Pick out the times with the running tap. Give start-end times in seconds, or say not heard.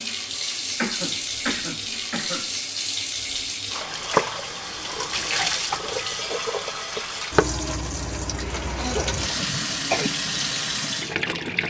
0.0-11.6.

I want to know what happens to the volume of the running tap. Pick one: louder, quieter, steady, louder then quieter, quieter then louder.
steady.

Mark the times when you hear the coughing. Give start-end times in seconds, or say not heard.
0.8-2.5, 8.8-10.1.